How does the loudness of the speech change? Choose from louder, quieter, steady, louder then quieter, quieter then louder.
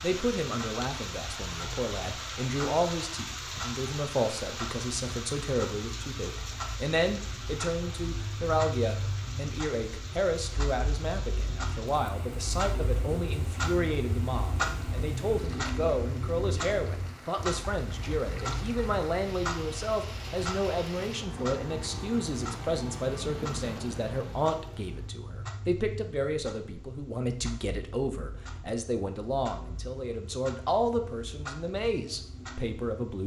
steady.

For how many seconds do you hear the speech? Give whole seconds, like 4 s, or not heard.
33 s.